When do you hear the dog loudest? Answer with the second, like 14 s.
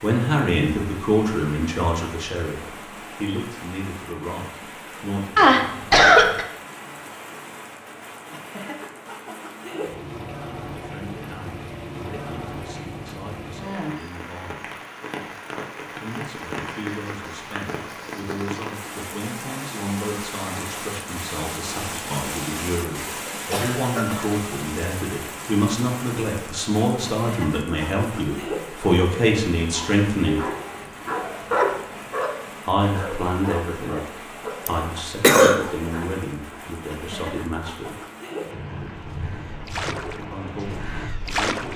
32 s.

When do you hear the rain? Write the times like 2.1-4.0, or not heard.
0.0-41.7.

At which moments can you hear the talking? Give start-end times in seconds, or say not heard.
0.0-5.5, 10.8-14.7, 16.0-30.4, 32.6-38.0, 40.3-41.7.